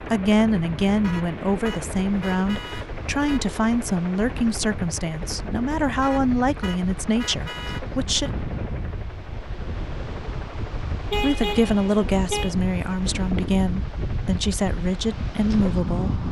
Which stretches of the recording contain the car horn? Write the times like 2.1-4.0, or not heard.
1.0-3.5, 6.0-8.3, 11.1-12.6.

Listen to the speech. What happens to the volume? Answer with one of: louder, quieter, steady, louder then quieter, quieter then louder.
steady.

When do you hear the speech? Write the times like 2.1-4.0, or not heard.
0.0-8.3, 11.2-16.2.